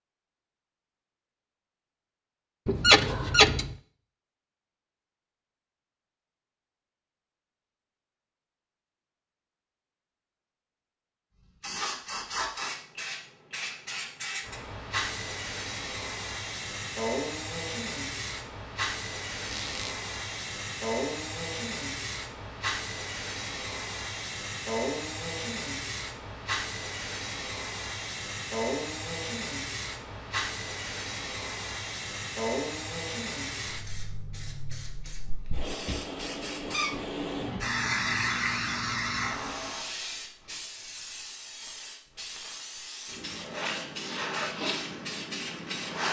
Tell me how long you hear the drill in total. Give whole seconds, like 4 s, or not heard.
not heard.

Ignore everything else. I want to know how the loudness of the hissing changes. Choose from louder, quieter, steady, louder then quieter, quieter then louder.
steady.